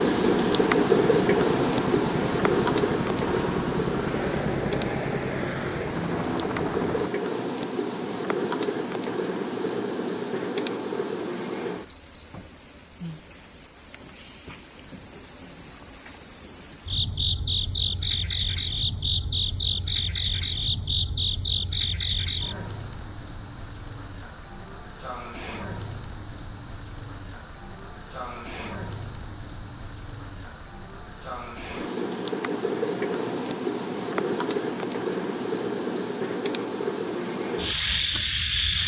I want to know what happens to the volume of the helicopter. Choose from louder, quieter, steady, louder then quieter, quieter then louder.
steady.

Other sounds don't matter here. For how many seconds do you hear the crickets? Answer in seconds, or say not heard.
39 s.